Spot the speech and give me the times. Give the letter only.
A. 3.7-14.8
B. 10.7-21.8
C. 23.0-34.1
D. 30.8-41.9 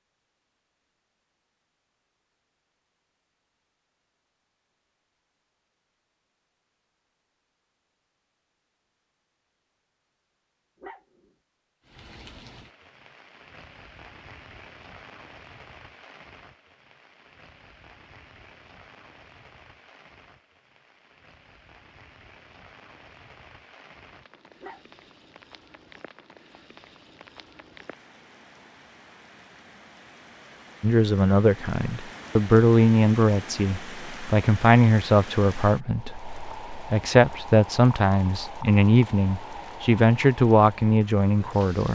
D.